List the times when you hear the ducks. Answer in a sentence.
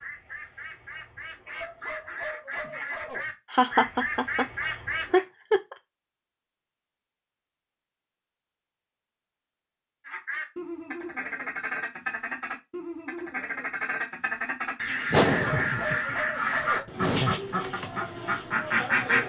You can hear the ducks from 0.0 to 5.2 s and from 10.1 to 19.2 s.